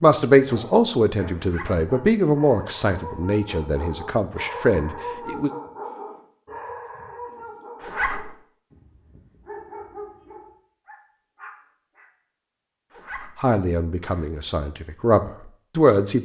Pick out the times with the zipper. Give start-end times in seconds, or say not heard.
1.4-1.9, 7.8-8.3, 12.9-14.3.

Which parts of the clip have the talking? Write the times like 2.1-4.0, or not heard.
0.0-5.5, 13.4-16.2.